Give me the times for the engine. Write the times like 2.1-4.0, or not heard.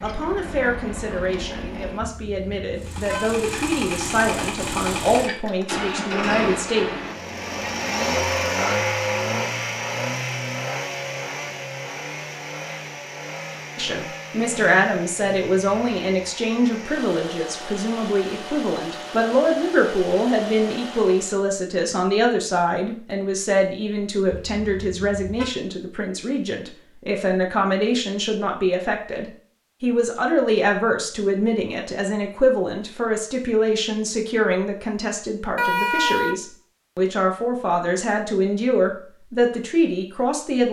0.0-21.4.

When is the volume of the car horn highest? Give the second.
36 s.